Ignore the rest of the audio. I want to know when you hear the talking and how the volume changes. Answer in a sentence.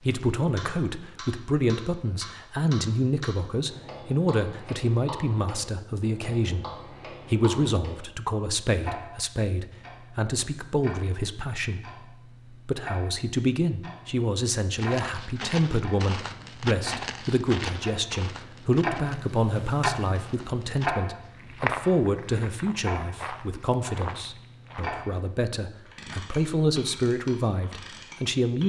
You can hear the talking from 0.0 to 28.6 s, at a steady volume.